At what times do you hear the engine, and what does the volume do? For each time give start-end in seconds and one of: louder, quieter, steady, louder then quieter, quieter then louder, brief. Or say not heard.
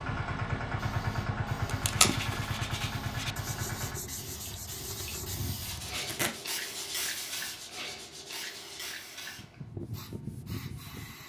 0.0-5.5 quieter.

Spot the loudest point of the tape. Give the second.
2 s.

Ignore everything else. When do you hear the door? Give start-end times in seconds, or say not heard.
not heard.